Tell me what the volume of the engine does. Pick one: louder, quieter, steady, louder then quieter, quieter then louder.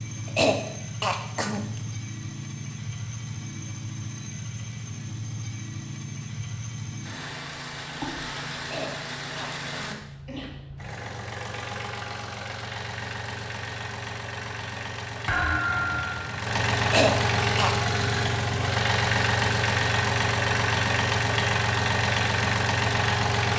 louder.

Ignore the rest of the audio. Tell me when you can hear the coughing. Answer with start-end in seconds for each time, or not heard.
0.2-1.8, 8.6-10.5, 16.9-17.8.